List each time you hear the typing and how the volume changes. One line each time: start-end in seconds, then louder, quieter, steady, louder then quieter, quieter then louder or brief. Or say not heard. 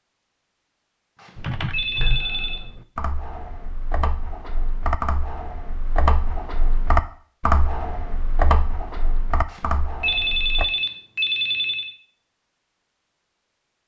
1.4-10.7 louder then quieter.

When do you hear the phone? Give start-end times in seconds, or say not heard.
1.1-2.6, 9.4-11.9.